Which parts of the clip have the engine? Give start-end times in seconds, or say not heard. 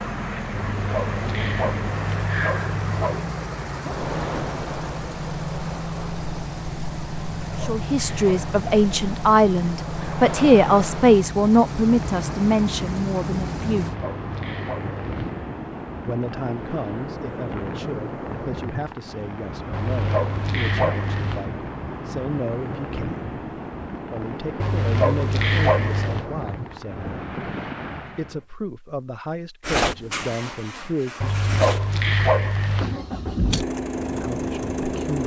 0.0-13.9, 29.6-35.2.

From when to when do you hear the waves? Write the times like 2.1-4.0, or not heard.
0.0-28.4.